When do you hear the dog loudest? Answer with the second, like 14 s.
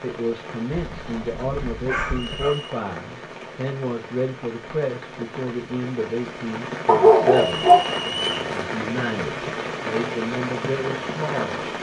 7 s.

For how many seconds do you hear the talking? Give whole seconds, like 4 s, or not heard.
11 s.